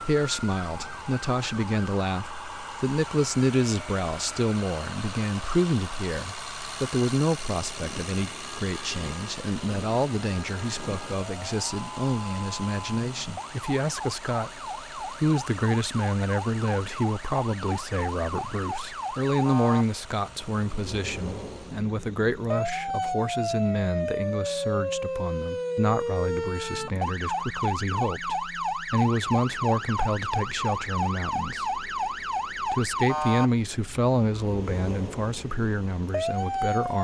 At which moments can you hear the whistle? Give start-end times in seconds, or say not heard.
not heard.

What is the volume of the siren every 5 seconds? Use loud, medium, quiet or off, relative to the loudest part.
medium, quiet, medium, medium, loud, loud, loud, loud.